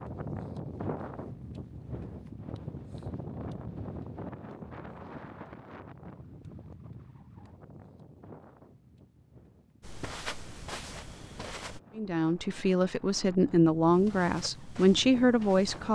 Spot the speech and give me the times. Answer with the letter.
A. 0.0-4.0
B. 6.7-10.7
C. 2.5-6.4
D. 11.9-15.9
D.